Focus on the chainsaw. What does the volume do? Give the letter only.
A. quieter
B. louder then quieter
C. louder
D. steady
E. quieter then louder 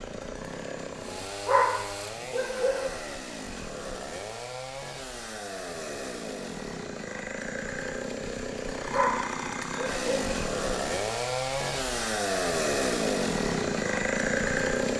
C.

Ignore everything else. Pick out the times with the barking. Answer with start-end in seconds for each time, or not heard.
1.4-3.0, 8.9-10.2.